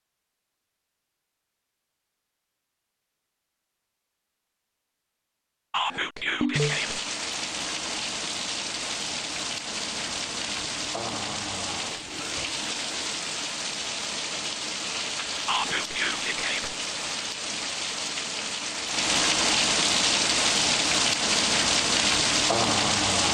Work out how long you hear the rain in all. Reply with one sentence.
The rain can be heard for 17 seconds in total.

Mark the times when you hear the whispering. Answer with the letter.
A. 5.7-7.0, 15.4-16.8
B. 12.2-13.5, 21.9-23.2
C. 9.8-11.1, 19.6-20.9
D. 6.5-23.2
A.